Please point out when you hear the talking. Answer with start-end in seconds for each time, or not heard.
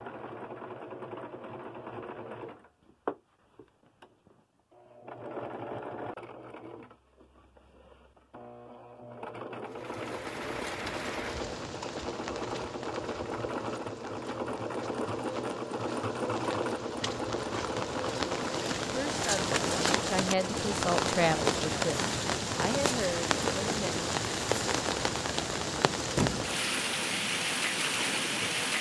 18.9-23.9.